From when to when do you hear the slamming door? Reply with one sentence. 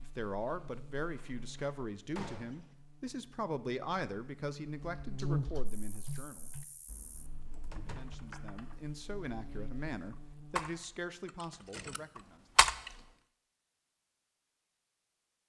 The slamming door can be heard from 1.0 to 2.6 s, from 7.7 to 8.2 s and from 11.5 to 12.2 s.